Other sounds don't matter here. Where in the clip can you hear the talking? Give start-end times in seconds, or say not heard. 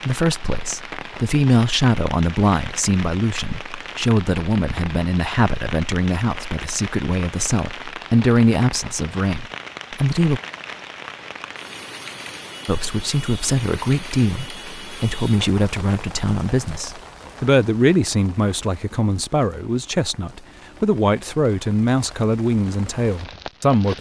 0.1-10.4, 12.7-23.9.